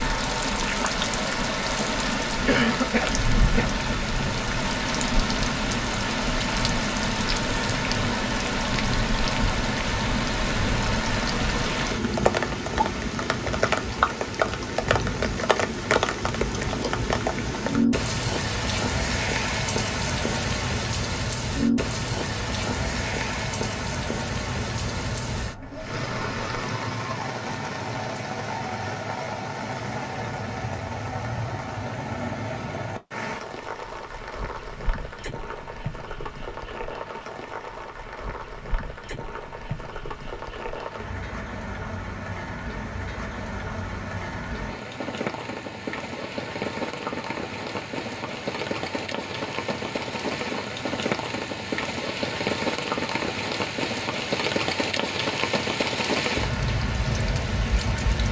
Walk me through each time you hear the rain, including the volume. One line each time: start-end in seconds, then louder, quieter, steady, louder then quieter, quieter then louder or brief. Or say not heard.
0.0-58.2 quieter then louder.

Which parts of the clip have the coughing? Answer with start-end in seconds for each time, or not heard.
2.5-3.8.